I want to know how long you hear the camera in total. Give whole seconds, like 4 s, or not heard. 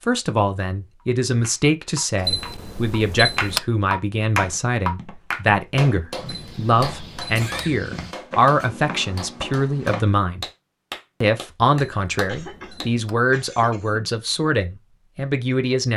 4 s.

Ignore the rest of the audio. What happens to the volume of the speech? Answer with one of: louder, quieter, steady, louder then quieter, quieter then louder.
steady.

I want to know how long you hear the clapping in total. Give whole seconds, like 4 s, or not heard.
12 s.